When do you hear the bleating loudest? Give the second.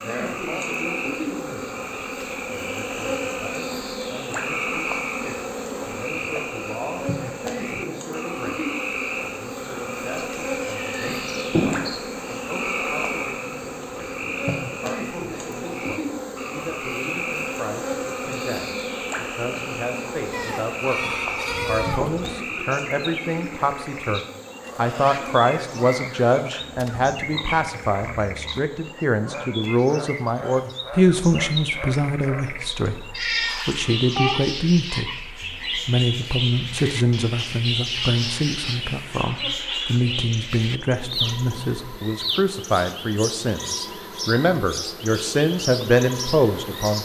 22 s.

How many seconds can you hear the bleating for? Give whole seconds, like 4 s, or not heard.
2 s.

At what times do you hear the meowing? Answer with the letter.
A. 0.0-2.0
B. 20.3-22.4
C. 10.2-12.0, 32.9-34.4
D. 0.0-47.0
C.